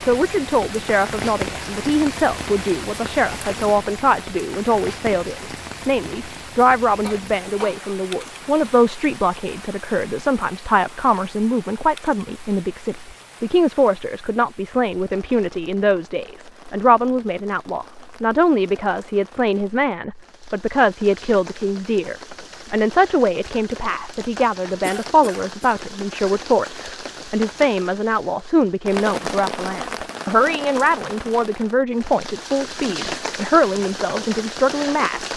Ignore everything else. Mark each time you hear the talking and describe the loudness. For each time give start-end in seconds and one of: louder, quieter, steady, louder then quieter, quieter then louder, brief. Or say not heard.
0.0-35.3 steady.